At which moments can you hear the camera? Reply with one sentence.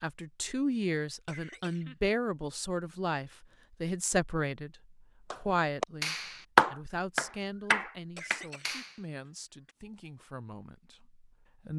The camera can't be heard in this clip.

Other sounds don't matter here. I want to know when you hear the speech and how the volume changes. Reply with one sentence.
You can hear the speech from 0.0 to 11.7 s, getting quieter.